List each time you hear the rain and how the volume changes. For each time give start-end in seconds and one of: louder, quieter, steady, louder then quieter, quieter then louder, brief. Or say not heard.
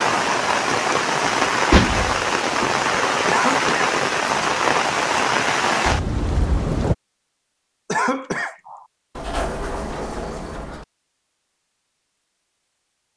0.0-7.0 steady.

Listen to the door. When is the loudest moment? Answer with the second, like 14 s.
2 s.